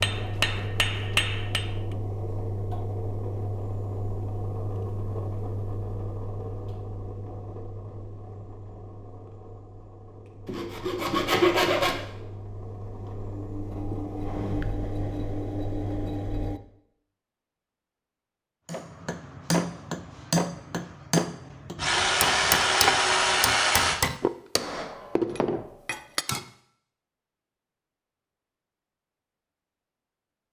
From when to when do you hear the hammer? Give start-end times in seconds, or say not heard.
0.0-1.8, 18.6-26.4.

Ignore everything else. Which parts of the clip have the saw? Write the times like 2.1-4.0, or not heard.
10.4-12.1, 21.8-24.0.